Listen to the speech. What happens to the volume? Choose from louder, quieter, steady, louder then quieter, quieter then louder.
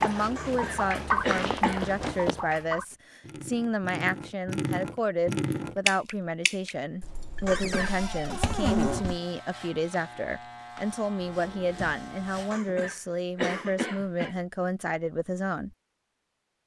steady.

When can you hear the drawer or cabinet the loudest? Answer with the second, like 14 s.
9 s.